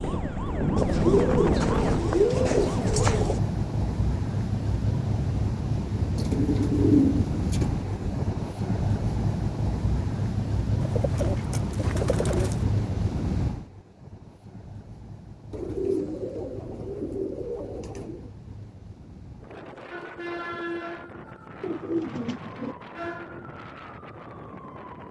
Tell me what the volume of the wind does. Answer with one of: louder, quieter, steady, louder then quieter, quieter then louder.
quieter.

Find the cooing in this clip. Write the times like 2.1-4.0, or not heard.
0.8-3.4, 6.2-8.3, 10.8-12.7, 15.5-18.3, 21.6-22.8.